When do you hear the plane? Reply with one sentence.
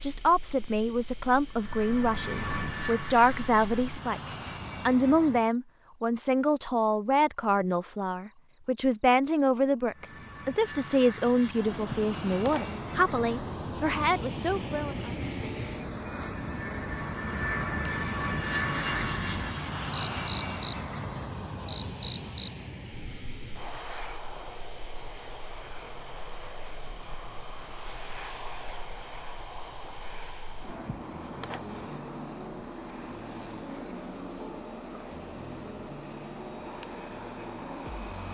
You can hear the plane from 1.4 to 5.5 s and from 9.9 to 38.2 s.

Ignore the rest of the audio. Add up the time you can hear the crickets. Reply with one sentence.
The crickets can be heard for 38 seconds in total.